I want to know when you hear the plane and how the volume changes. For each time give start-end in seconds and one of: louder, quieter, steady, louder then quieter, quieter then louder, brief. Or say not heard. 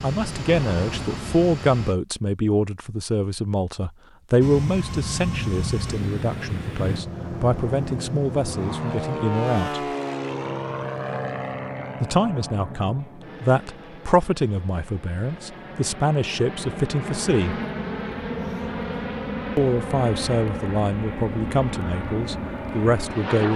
0.0-1.9 brief
4.4-23.5 quieter then louder.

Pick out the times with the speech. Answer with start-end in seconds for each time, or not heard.
0.0-9.8, 12.0-17.6, 19.6-23.5.